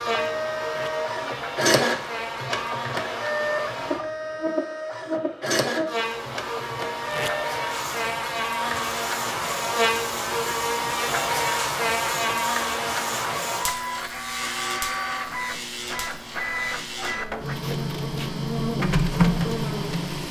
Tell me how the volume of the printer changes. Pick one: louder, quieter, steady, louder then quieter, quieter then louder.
quieter then louder.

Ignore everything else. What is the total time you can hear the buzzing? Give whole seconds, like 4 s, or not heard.
20 s.